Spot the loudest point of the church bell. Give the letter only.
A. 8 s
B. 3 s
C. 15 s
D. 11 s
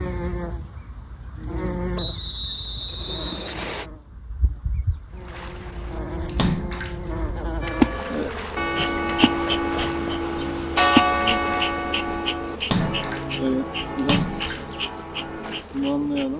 D.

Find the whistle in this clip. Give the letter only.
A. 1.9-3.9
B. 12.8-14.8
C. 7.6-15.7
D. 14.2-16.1
A.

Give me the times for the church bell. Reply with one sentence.
The church bell can be heard from 7.6 to 15.7 s.